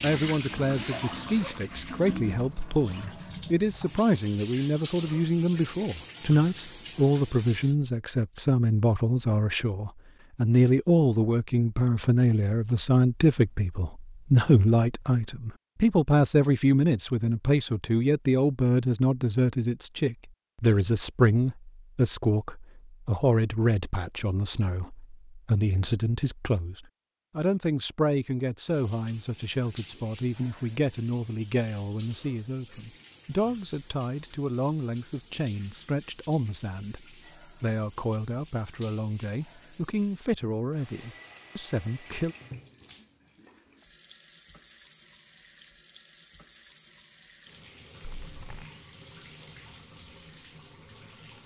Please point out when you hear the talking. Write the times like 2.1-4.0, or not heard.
0.0-42.4.